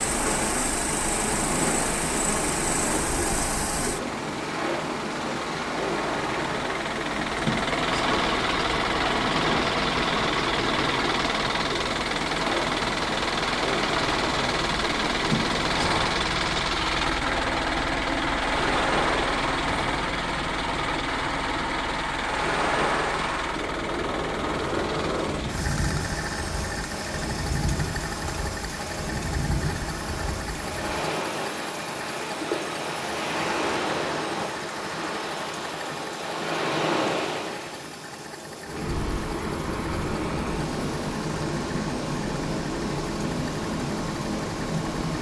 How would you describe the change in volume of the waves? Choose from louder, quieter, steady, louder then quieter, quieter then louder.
steady.